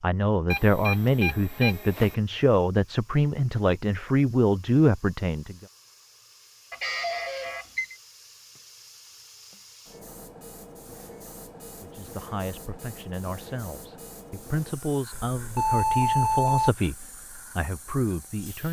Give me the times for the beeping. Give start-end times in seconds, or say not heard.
0.5-2.1, 6.7-8.0, 15.1-16.7.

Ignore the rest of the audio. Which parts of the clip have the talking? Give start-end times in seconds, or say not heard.
0.0-5.7, 11.8-18.6.